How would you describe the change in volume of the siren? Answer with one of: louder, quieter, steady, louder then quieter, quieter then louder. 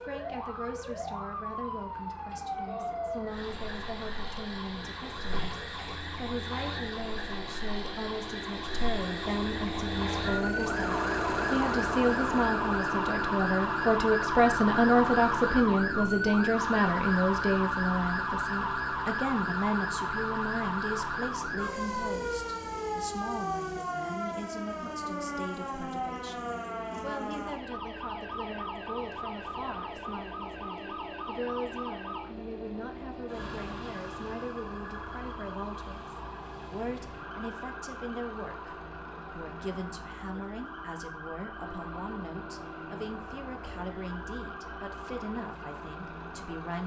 louder then quieter.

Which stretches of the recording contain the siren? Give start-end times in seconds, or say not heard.
0.0-46.8.